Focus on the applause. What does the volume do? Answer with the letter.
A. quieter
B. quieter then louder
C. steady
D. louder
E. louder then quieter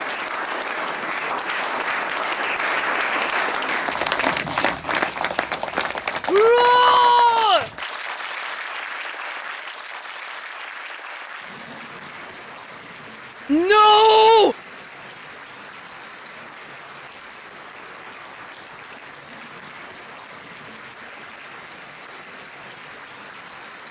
A.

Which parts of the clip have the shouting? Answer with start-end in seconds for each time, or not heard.
6.2-7.7, 13.4-14.6.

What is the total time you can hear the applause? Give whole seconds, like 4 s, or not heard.
24 s.